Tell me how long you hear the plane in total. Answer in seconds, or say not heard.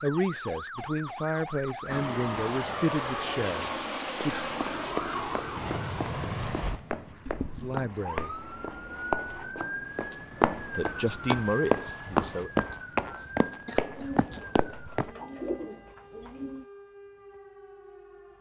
11 s.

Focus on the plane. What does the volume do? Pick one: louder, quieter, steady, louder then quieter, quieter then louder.
quieter.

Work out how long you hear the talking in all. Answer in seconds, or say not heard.
7 s.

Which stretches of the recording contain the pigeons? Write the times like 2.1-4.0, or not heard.
13.9-16.6.